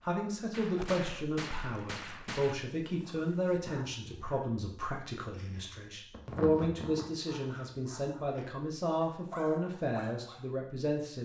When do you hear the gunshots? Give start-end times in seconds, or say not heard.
0.5-2.5.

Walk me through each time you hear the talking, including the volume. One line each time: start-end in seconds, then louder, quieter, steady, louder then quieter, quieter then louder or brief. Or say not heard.
0.0-11.1 steady.